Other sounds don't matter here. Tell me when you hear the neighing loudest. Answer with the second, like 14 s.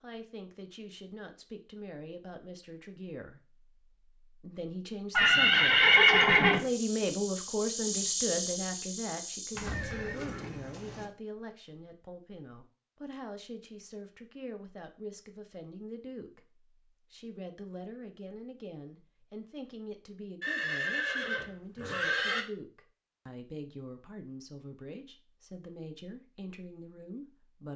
6 s.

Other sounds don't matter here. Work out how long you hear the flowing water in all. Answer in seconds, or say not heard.
not heard.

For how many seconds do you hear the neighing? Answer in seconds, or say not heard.
5 s.